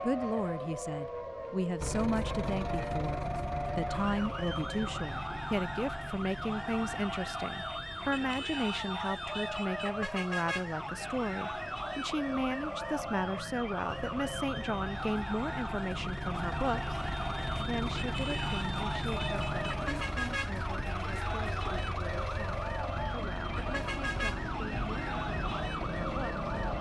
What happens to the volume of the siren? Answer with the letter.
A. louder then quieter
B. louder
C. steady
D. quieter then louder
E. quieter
C.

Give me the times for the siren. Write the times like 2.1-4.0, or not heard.
0.0-26.7.